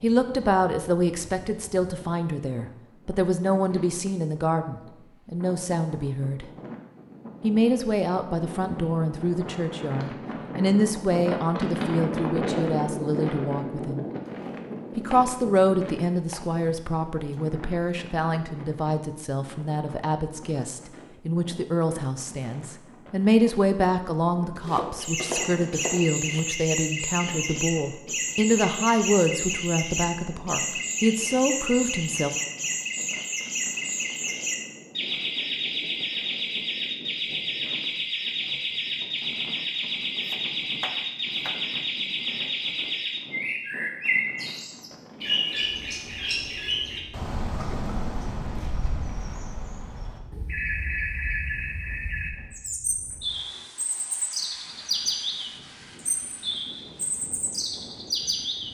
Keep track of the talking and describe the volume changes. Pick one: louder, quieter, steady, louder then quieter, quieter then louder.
steady.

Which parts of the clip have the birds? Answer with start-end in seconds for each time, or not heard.
25.0-58.6.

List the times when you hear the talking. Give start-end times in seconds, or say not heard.
0.0-6.5, 7.4-14.1, 14.9-32.4.